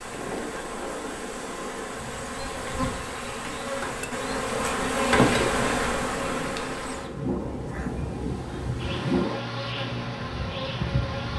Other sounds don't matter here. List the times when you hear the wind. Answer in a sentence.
You can hear the wind from 0.0 to 11.3 s.